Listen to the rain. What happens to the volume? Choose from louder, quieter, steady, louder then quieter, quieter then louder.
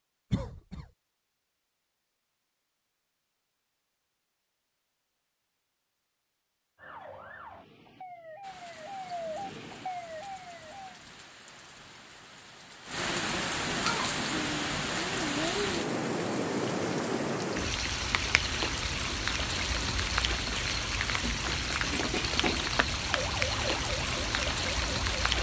louder.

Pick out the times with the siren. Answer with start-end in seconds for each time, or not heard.
6.8-11.0, 23.1-25.3.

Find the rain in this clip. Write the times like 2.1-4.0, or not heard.
8.4-25.3.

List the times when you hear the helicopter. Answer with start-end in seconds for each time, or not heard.
not heard.